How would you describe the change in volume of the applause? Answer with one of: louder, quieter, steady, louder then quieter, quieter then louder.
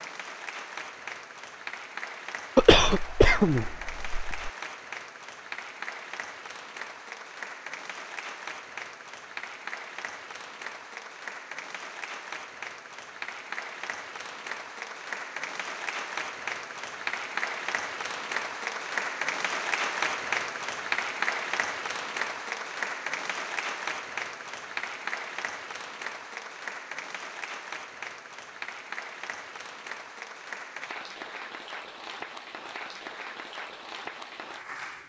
louder then quieter.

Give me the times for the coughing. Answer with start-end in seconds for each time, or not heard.
2.5-4.5.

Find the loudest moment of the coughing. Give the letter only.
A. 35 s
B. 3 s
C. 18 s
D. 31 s
B.